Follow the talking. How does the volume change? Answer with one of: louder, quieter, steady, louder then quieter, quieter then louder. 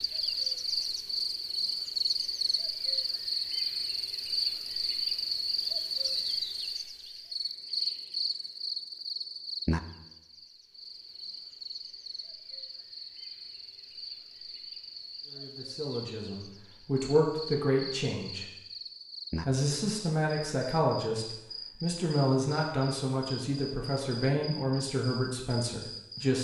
steady.